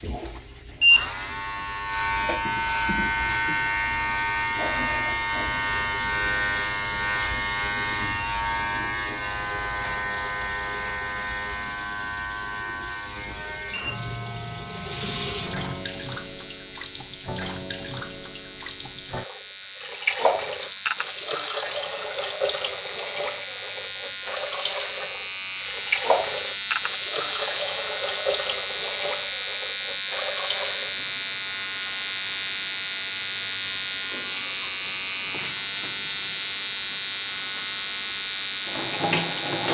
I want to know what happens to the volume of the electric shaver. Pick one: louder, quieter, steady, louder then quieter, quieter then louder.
quieter then louder.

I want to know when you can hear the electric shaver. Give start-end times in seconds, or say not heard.
0.0-39.6.